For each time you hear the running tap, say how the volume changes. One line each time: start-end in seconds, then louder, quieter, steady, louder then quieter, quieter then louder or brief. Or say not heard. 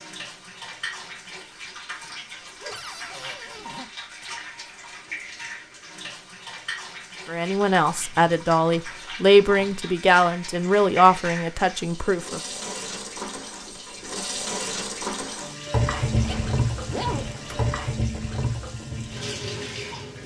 0.0-20.2 louder.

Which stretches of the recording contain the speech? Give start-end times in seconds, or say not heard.
7.2-12.4.